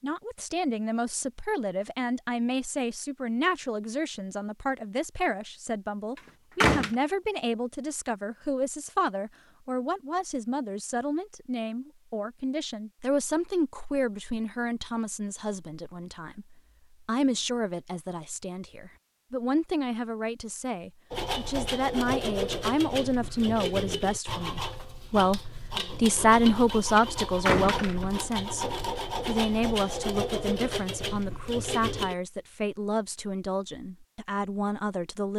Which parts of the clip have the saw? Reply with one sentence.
The saw can be heard from 21.1 to 32.1 s.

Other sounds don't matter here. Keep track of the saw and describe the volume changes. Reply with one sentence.
The volume of the saw stays about the same.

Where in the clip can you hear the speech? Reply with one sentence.
You can hear the speech from 0.0 to 35.3 s.